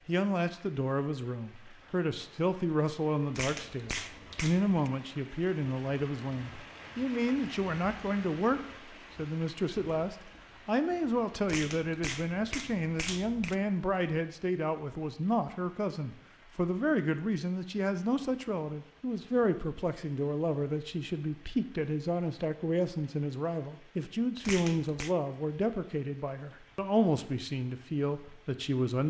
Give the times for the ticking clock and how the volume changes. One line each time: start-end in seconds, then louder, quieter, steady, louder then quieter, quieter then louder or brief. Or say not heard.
not heard.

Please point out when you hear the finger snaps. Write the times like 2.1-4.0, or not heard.
3.4-4.9, 11.4-13.6, 24.4-25.1.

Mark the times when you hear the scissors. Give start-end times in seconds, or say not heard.
not heard.